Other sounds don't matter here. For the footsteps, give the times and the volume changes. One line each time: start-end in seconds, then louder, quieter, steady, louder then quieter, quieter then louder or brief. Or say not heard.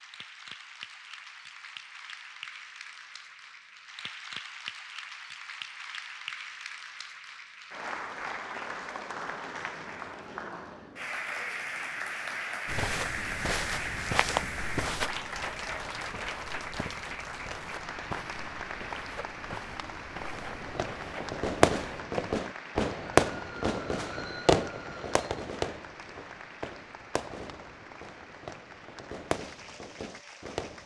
12.7-22.4 quieter.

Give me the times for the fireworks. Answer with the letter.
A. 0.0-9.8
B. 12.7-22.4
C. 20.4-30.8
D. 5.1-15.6
C.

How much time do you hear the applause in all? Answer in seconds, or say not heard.
31 s.